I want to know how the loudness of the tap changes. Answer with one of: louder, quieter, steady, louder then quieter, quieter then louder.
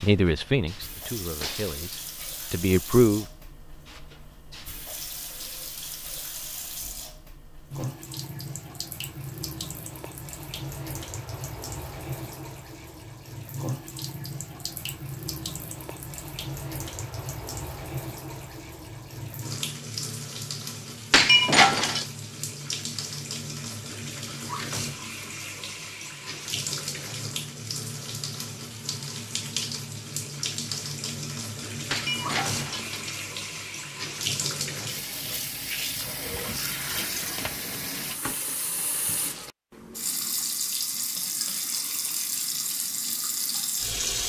louder.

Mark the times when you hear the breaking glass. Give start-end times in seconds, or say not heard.
1.4-2.5, 21.1-22.1, 31.9-33.2.